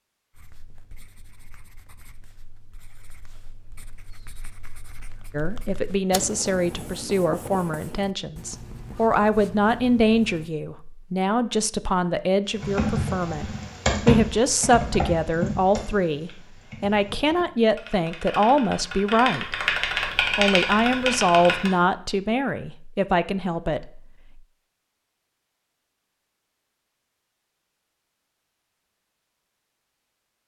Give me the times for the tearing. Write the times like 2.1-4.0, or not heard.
not heard.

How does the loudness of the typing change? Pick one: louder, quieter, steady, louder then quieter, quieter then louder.
quieter then louder.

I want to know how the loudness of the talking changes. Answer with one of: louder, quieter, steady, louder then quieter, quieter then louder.
steady.